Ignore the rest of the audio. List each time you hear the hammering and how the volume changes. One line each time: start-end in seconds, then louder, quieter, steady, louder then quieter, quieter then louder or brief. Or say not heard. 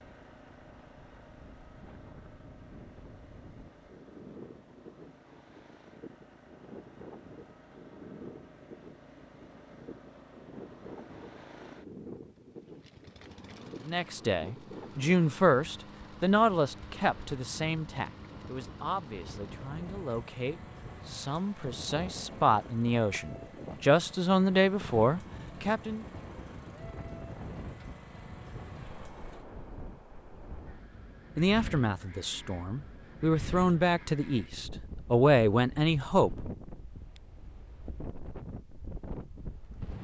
not heard.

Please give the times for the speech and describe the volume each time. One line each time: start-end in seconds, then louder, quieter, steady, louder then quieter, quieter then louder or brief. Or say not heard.
13.8-26.1 quieter then louder
31.4-36.5 louder.